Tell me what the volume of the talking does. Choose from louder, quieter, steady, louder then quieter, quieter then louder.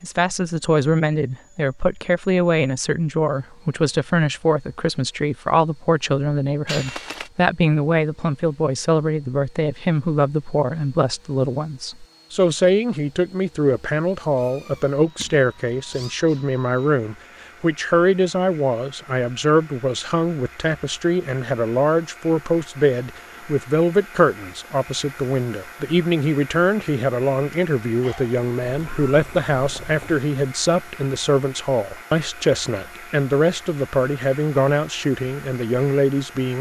steady.